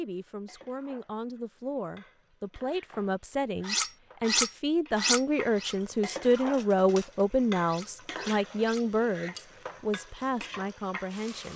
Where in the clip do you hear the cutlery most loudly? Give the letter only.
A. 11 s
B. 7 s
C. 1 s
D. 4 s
D.